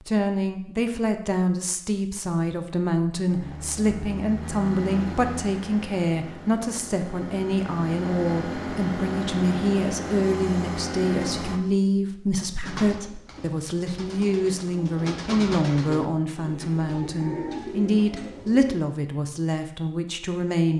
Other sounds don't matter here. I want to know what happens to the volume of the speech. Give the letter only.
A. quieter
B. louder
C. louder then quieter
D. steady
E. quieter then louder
D.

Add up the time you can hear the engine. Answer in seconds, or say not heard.
8 s.